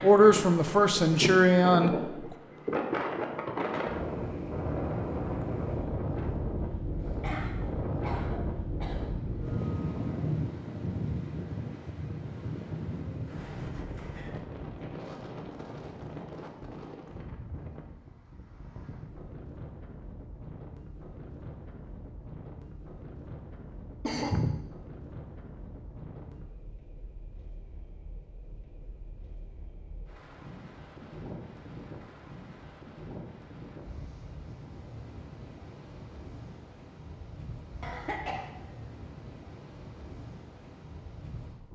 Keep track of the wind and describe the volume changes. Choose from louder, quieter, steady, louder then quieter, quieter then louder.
quieter.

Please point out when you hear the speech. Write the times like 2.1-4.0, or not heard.
0.0-2.0.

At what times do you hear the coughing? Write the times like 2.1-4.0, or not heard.
7.2-9.0, 24.1-24.6, 37.8-38.5.